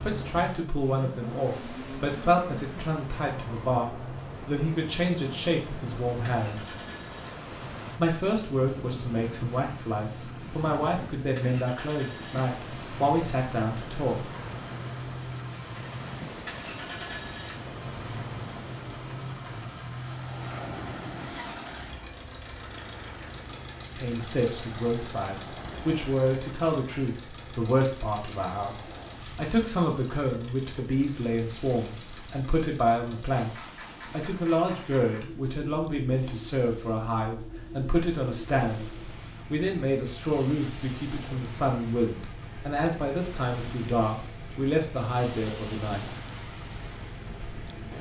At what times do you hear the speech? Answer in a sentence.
You can hear the speech from 0.0 to 6.8 s, from 8.0 to 14.2 s and from 23.9 to 46.2 s.